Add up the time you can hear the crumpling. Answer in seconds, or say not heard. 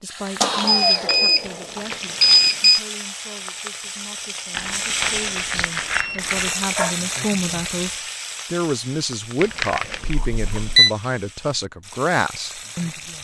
5 s.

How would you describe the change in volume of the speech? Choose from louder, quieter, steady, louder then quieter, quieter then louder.
quieter then louder.